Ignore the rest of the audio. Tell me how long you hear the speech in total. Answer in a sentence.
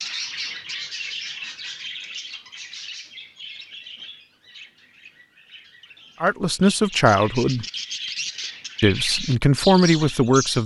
You can hear the speech for 3 seconds altogether.